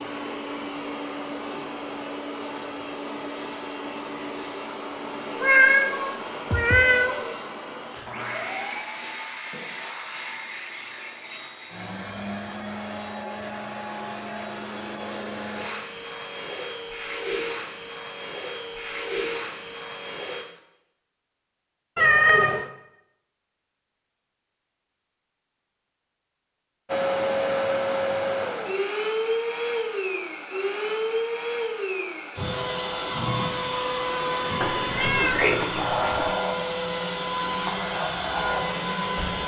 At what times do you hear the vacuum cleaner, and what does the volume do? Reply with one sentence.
You can hear the vacuum cleaner from 0.0 to 20.4 s, at a steady volume; and from 26.9 to 39.4 s, at a steady volume.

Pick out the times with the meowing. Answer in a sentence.
You can hear the meowing from 5.3 to 7.3 s, from 21.9 to 22.6 s and from 34.6 to 36.3 s.